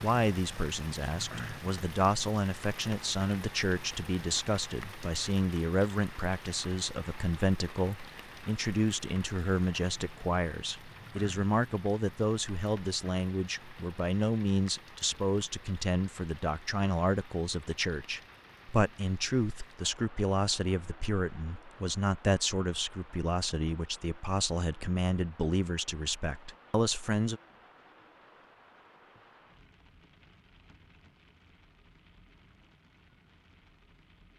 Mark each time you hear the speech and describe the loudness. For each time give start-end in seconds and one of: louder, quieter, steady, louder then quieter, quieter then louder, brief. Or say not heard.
0.0-27.4 steady.